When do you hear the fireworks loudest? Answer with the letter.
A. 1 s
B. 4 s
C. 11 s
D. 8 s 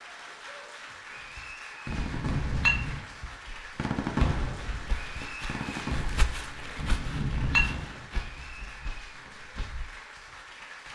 B.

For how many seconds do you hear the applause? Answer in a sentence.
You can hear the applause for 11 seconds altogether.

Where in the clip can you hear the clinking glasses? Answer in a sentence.
You can hear the clinking glasses from 1.9 to 3.0 s and from 6.8 to 7.8 s.